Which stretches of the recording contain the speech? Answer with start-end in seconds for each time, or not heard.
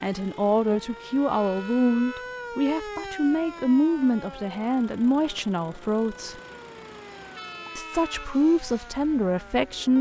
0.0-6.3, 7.8-9.9.